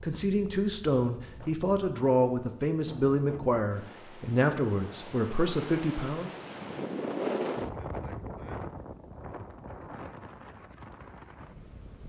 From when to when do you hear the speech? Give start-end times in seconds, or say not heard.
0.0-6.3.